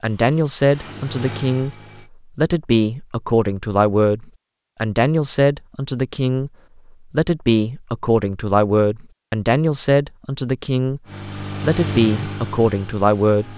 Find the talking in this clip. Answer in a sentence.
You can hear the talking from 0.0 to 1.8 s, from 2.4 to 6.5 s, from 7.1 to 11.0 s and from 11.6 to 13.5 s.